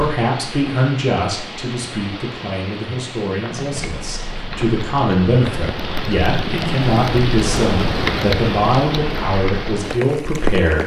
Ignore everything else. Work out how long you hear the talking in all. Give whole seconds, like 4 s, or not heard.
11 s.